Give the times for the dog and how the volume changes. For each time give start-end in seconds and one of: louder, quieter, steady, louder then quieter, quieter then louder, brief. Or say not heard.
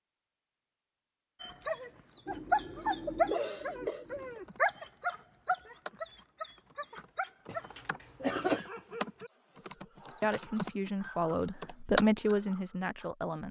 1.4-13.1 quieter.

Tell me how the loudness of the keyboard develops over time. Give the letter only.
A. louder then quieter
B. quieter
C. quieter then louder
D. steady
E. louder
E.